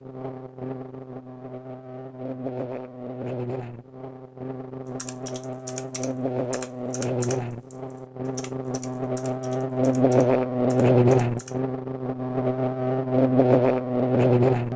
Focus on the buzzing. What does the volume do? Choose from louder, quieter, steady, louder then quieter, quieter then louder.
louder.